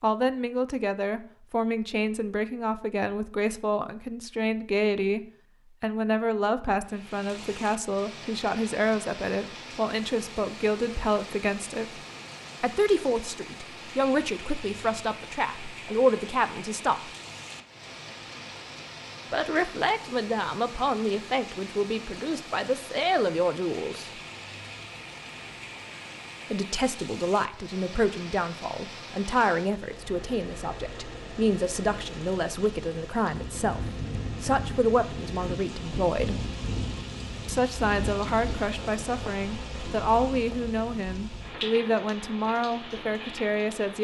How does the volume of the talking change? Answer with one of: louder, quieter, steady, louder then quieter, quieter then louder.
steady.